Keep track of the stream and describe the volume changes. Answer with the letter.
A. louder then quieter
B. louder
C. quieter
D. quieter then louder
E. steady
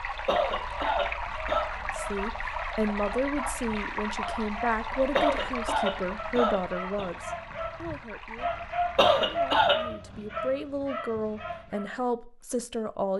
C.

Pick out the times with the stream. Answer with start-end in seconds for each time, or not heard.
0.0-9.7.